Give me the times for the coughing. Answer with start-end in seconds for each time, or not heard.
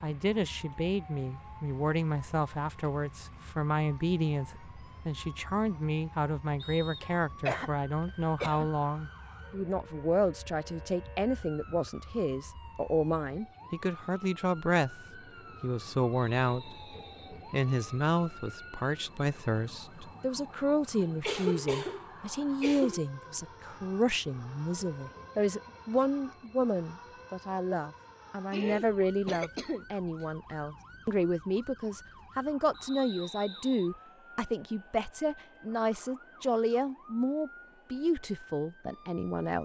7.0-8.7, 21.0-23.0, 28.5-30.2.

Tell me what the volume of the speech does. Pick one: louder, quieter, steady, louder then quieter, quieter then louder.
steady.